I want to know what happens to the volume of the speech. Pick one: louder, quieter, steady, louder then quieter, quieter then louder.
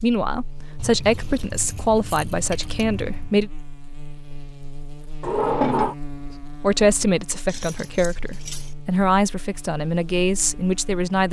steady.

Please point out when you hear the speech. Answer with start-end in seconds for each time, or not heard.
0.0-3.5, 6.5-11.2.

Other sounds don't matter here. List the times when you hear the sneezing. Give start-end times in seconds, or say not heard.
not heard.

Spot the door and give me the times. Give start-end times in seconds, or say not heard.
5.2-6.0.